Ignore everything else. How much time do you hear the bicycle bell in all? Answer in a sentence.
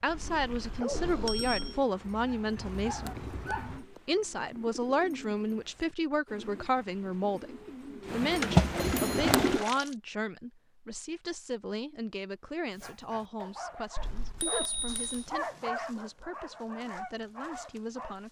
You can hear the bicycle bell for 4 seconds altogether.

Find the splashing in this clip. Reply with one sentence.
You can hear the splashing from 8.4 to 9.9 s.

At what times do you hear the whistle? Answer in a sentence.
The whistle can't be heard in this clip.